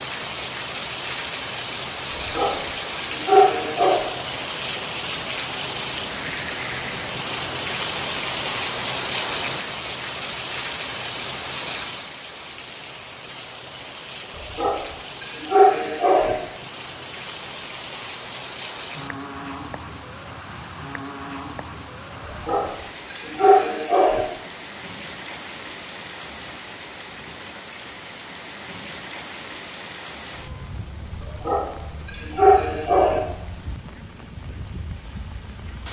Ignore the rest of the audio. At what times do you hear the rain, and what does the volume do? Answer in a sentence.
The rain can be heard from 0.0 to 35.8 s, getting quieter.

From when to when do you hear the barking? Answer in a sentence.
The barking can be heard from 2.1 to 4.0 s, from 14.4 to 16.4 s, from 22.3 to 24.2 s and from 31.2 to 33.2 s.